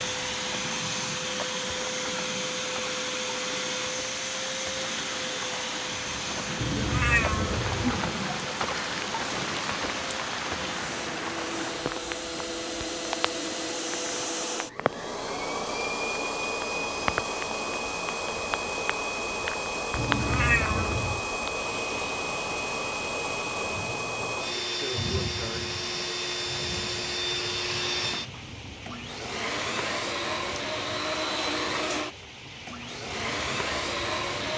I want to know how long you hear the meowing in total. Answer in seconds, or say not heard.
3 s.